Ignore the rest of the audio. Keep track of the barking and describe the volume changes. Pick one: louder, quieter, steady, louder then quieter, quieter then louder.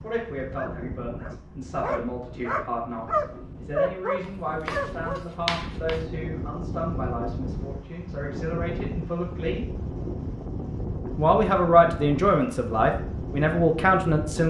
louder.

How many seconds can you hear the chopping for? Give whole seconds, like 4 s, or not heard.
2 s.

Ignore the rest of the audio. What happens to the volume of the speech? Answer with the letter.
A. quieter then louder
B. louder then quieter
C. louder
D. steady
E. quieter
C.